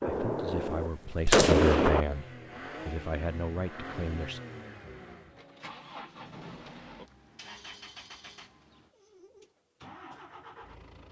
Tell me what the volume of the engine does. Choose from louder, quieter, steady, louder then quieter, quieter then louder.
quieter.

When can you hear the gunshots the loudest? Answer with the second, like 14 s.
1 s.